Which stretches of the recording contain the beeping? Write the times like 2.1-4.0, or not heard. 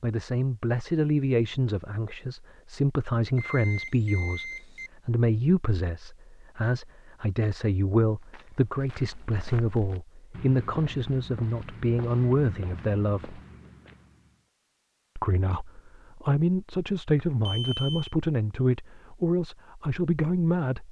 3.4-4.9, 17.4-18.1.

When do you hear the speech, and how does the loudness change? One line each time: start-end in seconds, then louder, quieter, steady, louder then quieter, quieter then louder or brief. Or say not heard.
0.0-13.4 steady
15.2-20.8 steady.